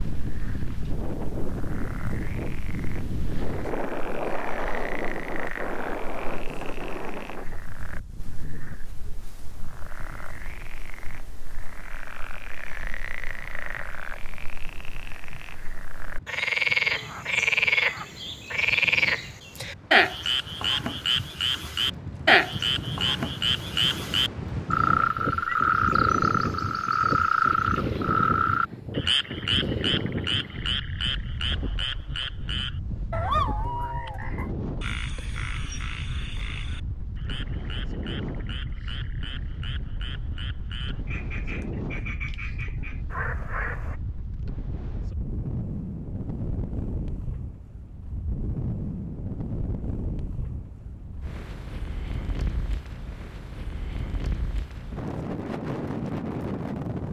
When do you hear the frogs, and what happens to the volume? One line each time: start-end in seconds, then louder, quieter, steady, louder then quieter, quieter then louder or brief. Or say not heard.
0.0-44.0 louder then quieter.